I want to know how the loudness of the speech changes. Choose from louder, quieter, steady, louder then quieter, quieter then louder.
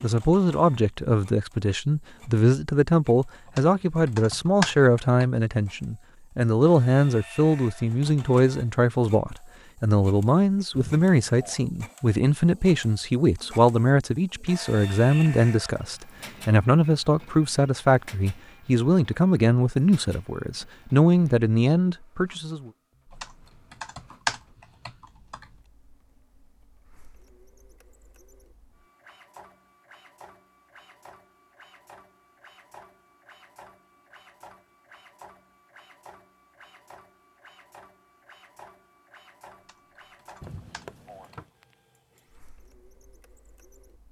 steady.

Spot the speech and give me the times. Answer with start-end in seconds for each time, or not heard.
0.0-22.7.